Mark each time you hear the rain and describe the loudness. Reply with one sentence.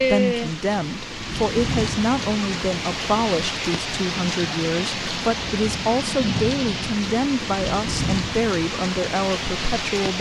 You can hear the rain from 0.0 to 10.1 s, at a steady volume.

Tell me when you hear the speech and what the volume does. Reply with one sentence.
You can hear the speech from 0.0 to 10.1 s, at a steady volume.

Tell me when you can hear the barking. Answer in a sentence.
You can't hear the barking here.